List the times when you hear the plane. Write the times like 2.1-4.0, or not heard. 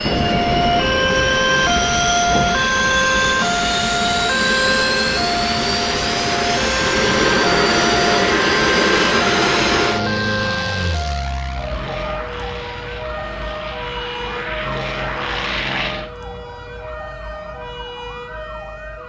0.0-16.1.